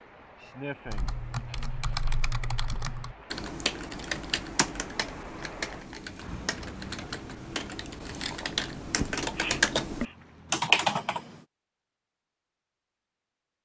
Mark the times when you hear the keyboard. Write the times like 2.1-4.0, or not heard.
0.8-11.3.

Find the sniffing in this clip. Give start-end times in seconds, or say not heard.
0.4-1.9, 9.3-10.2.